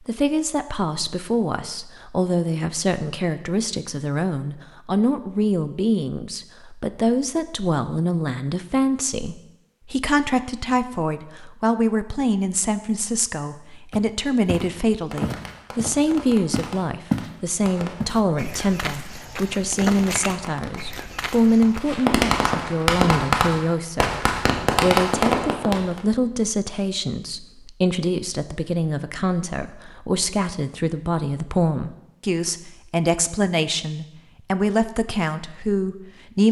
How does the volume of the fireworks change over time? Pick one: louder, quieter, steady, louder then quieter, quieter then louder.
louder.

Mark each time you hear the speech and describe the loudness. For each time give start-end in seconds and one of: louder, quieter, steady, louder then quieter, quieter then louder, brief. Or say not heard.
0.0-36.4 steady.